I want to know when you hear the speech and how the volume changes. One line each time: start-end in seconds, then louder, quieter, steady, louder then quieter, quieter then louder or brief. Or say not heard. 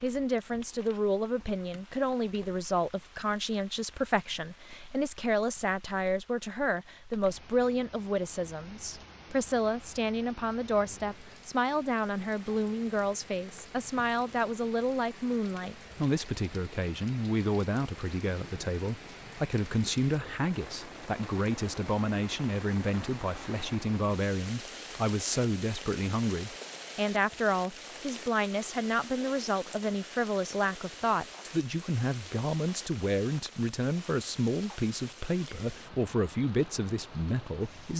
0.0-37.9 steady.